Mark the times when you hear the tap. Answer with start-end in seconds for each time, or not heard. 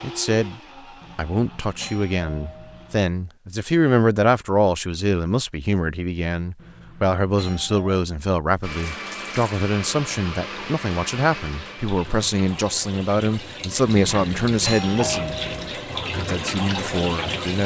8.6-17.6.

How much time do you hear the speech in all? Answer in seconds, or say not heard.
17 s.